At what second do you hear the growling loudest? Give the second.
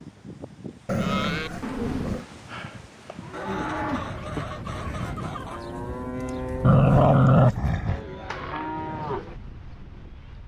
7 s.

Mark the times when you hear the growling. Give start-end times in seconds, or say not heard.
0.8-2.2, 6.6-8.0.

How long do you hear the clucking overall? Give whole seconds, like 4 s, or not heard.
2 s.